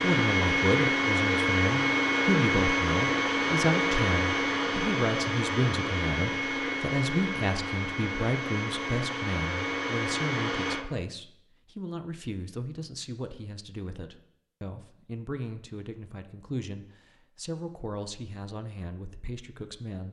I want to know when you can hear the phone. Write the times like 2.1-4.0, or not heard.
not heard.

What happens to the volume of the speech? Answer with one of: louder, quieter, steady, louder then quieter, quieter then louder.
quieter.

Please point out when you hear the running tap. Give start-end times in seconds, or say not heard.
not heard.